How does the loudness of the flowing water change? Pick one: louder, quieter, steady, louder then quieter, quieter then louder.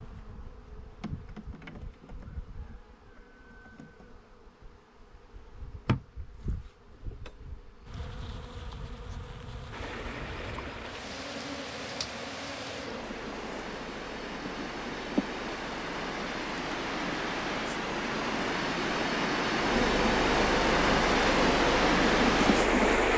louder.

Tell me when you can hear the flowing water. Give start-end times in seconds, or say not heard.
9.7-23.1.